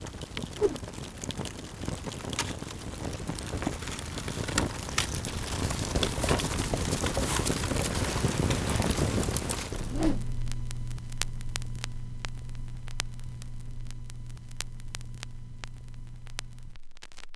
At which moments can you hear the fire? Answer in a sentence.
You can hear the fire from 0.0 to 17.3 s.